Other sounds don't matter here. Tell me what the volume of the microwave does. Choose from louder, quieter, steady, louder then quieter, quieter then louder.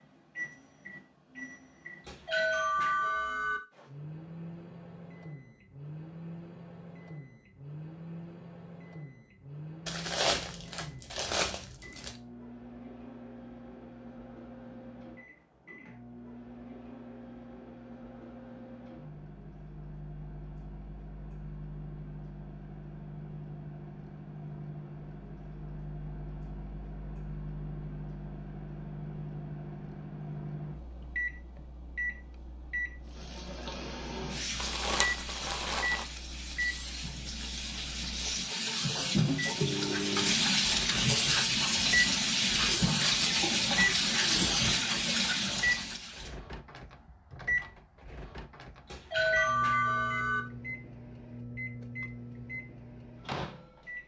louder.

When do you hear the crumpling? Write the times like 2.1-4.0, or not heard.
9.8-12.2, 34.6-36.0.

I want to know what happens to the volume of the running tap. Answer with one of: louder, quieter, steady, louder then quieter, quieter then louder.
louder.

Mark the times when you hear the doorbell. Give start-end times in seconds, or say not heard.
2.0-3.6, 48.9-50.5.